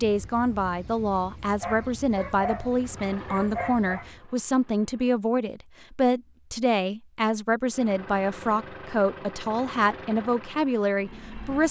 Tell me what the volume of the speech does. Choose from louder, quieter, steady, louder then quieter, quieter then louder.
steady.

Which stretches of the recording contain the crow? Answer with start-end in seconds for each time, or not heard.
not heard.